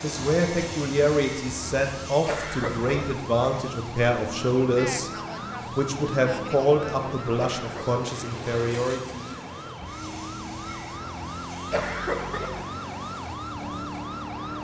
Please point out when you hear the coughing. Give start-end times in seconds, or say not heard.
2.2-3.0, 7.3-8.0, 11.7-12.7.